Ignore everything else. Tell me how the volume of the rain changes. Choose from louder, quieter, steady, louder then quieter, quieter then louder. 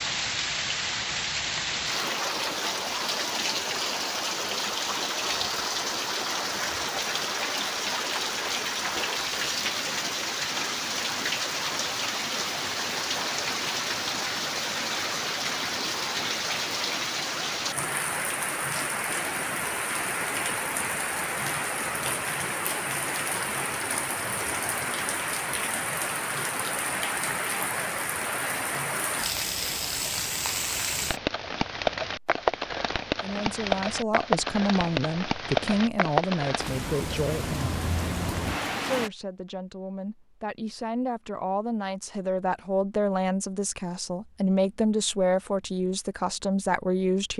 steady.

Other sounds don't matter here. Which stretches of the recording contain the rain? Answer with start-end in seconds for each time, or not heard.
0.0-39.1.